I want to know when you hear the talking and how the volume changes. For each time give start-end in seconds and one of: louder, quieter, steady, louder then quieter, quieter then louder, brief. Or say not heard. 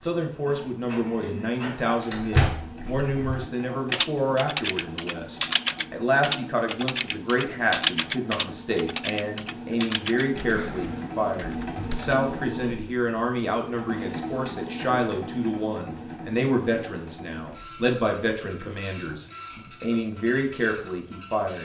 0.0-21.6 steady.